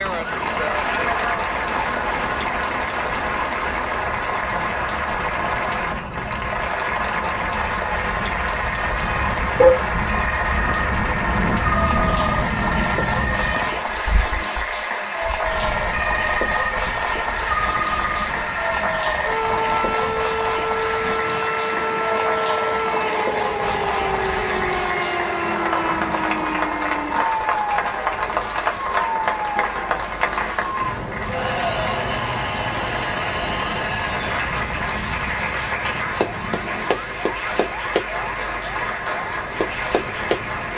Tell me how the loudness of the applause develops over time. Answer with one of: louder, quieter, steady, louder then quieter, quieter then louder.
steady.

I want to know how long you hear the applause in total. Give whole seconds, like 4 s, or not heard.
41 s.